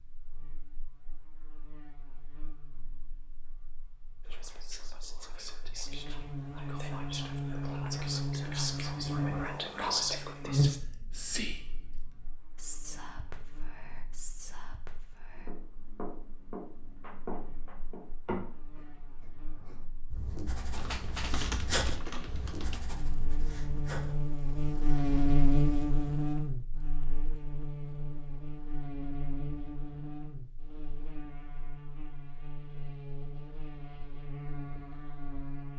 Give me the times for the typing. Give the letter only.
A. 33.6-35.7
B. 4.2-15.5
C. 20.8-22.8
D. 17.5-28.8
C.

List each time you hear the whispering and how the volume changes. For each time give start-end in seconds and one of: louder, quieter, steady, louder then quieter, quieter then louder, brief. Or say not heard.
4.2-15.5 louder then quieter.